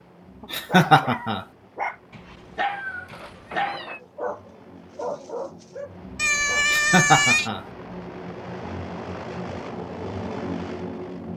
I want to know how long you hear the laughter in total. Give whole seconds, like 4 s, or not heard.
2 s.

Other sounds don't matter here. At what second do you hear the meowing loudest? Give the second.
7 s.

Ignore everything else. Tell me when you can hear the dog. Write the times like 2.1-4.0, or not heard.
0.4-6.7.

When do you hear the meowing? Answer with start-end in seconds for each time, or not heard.
2.6-4.0, 6.2-7.5.